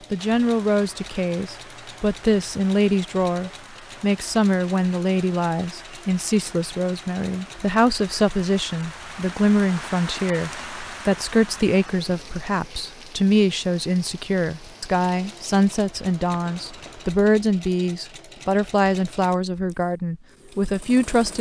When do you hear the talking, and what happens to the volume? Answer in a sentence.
The talking can be heard from 0.1 to 21.3 s, at a steady volume.